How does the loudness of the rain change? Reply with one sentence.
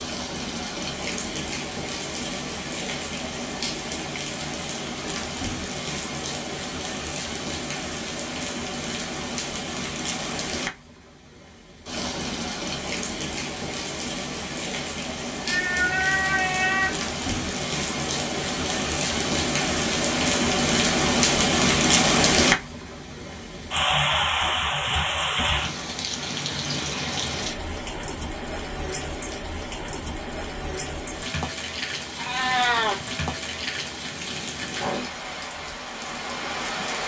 The loudness of the rain goes up, then down.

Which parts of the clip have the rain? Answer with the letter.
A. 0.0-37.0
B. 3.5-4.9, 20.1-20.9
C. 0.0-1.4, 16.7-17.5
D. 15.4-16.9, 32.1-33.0
A.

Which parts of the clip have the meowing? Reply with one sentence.
You can hear the meowing from 15.4 to 16.9 s and from 32.1 to 33.0 s.